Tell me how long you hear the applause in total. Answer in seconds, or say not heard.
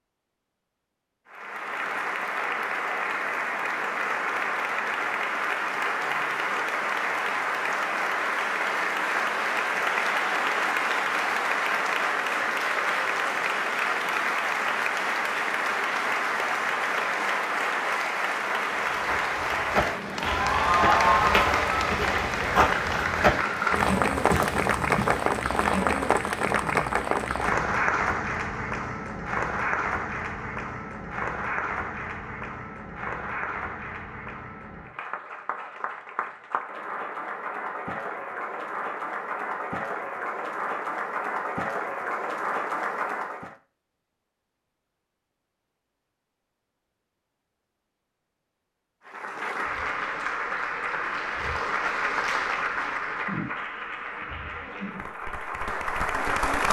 50 s.